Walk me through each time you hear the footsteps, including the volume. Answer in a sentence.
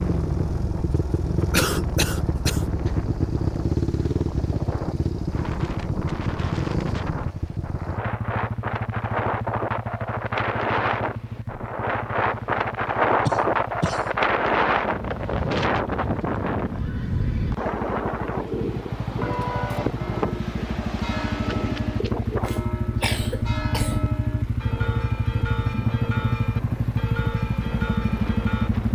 The footsteps can't be heard in this clip.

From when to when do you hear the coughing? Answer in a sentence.
The coughing can be heard from 1.5 to 2.6 s, from 13.2 to 14.1 s and from 22.4 to 23.9 s.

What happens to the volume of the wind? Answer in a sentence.
The volume of the wind goes up, then down.